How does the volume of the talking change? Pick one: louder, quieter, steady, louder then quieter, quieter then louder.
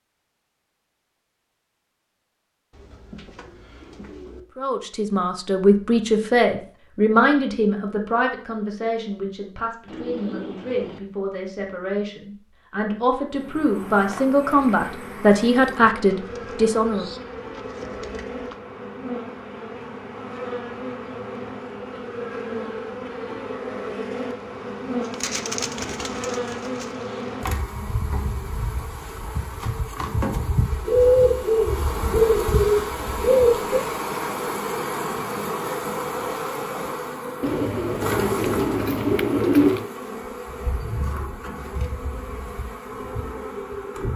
quieter then louder.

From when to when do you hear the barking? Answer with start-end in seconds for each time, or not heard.
not heard.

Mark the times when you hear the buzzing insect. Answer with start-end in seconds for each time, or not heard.
13.3-44.1.